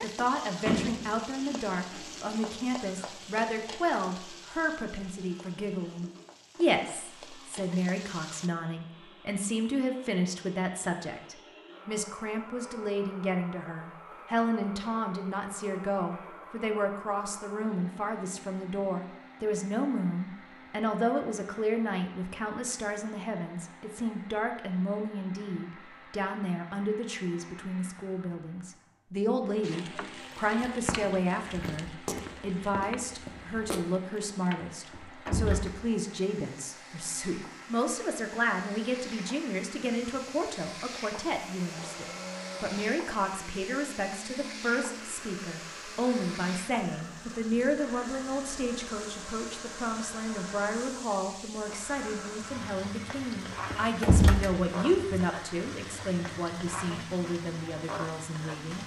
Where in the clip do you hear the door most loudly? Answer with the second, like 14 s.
54 s.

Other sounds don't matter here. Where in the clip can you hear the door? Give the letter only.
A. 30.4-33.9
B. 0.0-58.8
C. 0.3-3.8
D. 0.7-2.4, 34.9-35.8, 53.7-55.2
D.